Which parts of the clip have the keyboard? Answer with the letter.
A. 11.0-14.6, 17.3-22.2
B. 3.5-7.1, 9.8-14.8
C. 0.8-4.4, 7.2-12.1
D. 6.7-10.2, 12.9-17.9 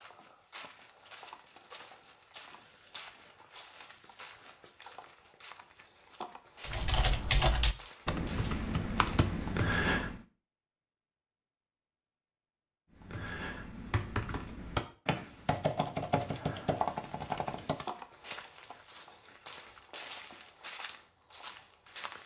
D.